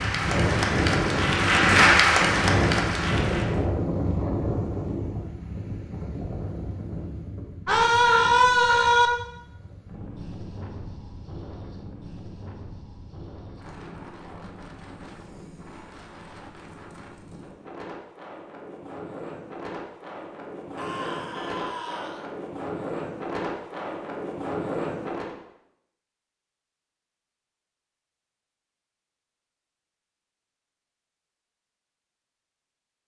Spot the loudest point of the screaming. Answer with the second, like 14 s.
8 s.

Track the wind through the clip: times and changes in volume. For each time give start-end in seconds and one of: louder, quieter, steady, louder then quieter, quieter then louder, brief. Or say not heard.
0.0-25.4 quieter then louder.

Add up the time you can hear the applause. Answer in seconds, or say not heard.
4 s.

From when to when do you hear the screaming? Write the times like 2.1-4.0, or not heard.
7.7-9.1, 20.8-22.2.